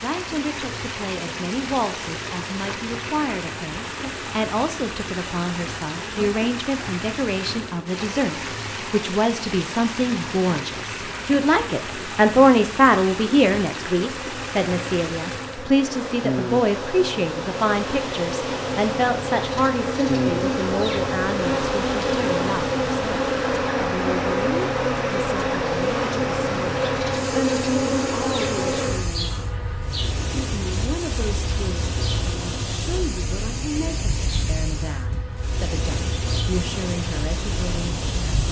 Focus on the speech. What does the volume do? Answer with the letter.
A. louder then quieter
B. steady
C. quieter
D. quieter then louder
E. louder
A.